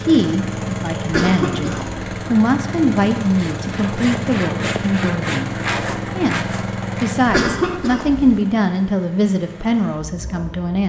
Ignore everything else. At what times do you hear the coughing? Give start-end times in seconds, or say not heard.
1.1-2.0, 7.2-8.4.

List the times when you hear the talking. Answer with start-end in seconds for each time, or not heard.
0.0-5.5, 6.2-10.8.